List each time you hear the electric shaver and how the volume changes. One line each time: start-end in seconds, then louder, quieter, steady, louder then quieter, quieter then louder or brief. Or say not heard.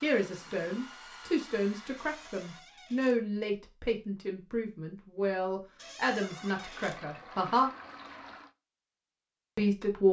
not heard.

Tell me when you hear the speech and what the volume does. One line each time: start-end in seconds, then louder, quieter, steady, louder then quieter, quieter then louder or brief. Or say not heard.
0.0-7.7 steady
9.6-10.0 brief.